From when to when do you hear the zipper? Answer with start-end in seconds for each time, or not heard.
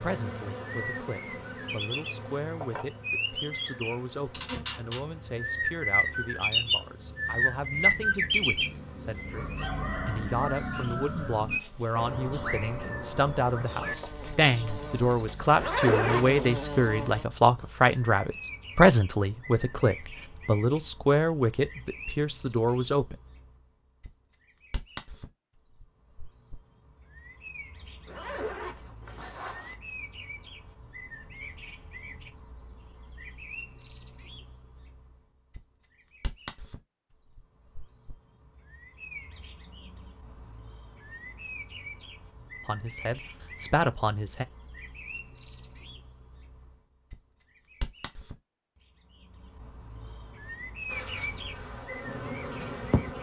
15.6-16.4, 28.1-29.8.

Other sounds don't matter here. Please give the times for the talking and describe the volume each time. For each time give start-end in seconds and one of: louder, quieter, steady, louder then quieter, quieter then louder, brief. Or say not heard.
0.0-23.1 louder
42.6-44.5 brief.